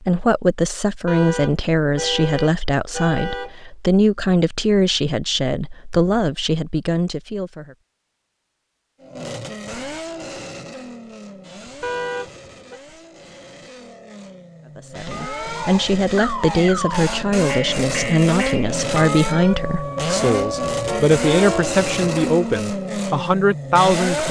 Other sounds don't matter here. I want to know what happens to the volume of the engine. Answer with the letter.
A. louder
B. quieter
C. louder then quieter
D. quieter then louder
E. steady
D.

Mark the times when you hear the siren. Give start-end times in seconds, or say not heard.
15.1-22.4.